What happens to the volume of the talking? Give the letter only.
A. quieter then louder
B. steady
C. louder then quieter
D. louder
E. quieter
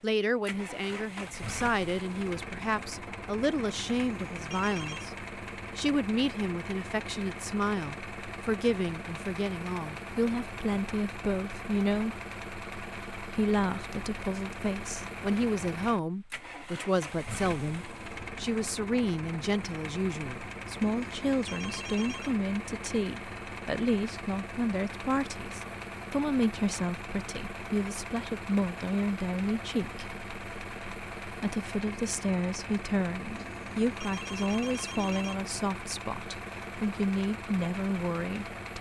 B.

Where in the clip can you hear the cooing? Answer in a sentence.
You can't hear the cooing here.